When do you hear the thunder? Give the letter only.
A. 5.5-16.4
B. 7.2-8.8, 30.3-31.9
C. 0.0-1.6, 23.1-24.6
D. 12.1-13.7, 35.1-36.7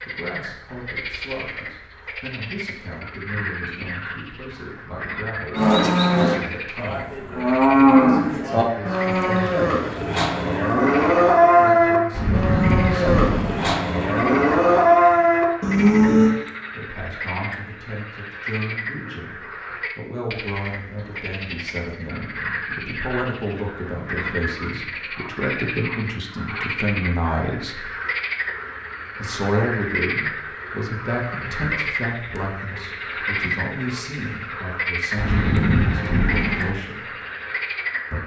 D.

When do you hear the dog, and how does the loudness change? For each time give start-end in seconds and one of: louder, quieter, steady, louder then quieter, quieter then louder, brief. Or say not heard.
not heard.